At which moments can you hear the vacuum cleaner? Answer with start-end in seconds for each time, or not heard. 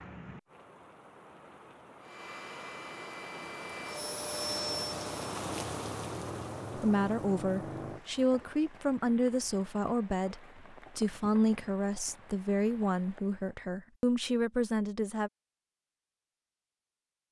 2.0-5.2.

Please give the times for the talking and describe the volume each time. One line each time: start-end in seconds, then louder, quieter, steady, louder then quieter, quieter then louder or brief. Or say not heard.
6.8-15.3 steady.